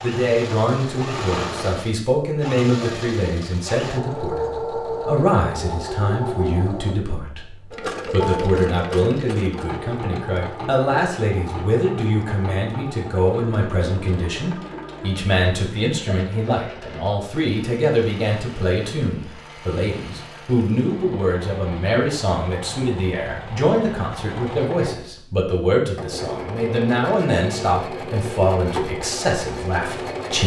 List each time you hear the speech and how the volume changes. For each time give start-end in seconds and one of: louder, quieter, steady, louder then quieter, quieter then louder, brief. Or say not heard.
0.0-30.4 steady.